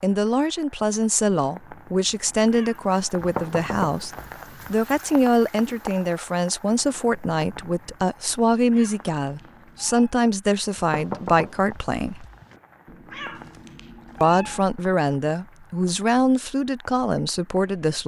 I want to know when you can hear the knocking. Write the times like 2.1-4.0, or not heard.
3.2-4.8, 10.8-12.6.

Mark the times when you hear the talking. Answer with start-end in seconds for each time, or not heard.
0.0-4.1, 4.7-12.2, 14.2-18.0.